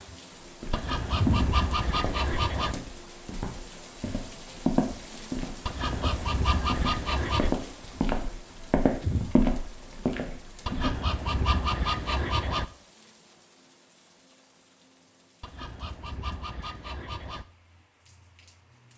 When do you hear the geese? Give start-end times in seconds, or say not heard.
0.7-2.8, 5.7-7.5, 10.7-12.7, 15.4-17.4.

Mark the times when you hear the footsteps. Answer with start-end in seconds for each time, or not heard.
0.5-10.9.